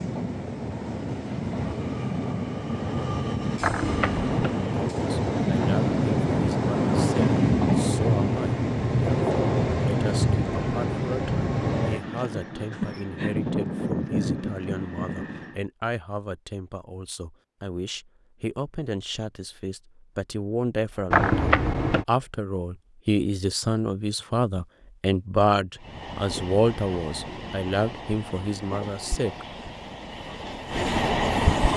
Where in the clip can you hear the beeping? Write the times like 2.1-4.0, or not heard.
3.6-4.5, 21.1-22.1.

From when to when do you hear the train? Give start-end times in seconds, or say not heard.
0.0-15.6, 25.8-31.7.